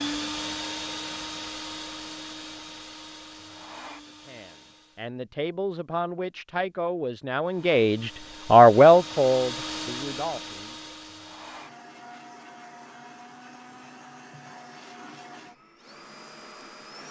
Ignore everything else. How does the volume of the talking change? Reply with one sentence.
The volume of the talking goes up, then down.